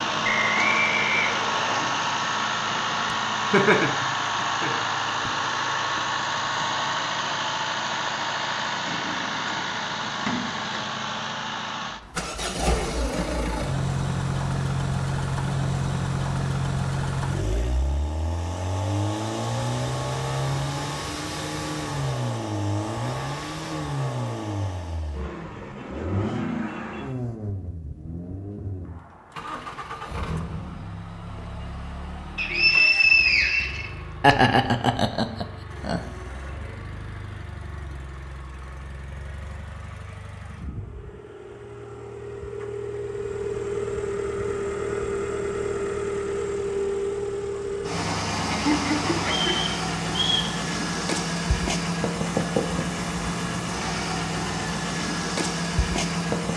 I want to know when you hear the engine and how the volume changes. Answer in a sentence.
The engine can be heard from 0.0 to 56.5 s, getting quieter then louder.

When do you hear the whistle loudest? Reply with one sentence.
The volume of the whistle peaks at 33 seconds.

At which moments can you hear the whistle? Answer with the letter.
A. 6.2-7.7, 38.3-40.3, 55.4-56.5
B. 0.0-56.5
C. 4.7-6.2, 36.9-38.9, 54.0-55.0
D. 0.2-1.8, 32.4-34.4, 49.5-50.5
D.